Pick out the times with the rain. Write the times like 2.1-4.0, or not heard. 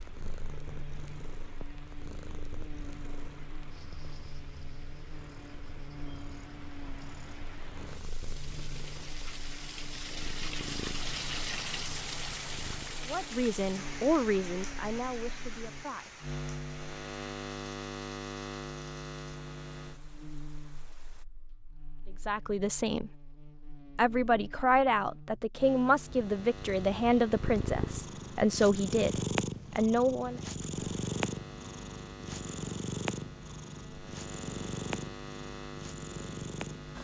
0.0-21.2.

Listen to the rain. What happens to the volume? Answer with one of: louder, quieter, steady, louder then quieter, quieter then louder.
louder then quieter.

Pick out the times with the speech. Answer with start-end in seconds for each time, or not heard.
13.1-16.2, 22.2-23.1, 23.9-30.4.